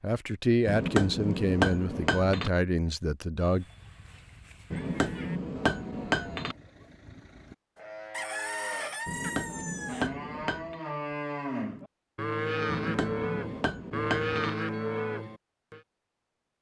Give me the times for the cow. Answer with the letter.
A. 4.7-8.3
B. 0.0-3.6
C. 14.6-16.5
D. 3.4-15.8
D.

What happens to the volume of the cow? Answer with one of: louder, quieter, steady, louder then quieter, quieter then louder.
louder.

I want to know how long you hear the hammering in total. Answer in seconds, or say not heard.
7 s.